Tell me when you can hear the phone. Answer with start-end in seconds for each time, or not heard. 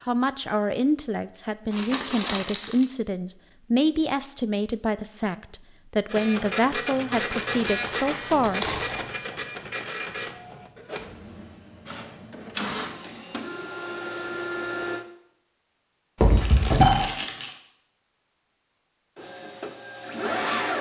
16.2-17.1.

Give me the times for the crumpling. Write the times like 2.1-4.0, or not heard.
1.7-2.9, 7.2-9.1, 16.4-17.6.